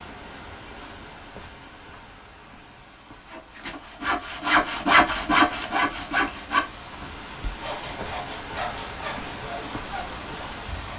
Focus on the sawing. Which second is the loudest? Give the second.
5 s.